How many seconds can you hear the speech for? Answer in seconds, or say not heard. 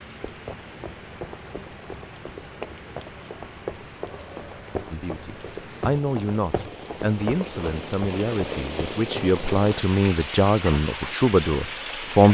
7 s.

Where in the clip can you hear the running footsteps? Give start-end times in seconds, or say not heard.
0.1-9.4.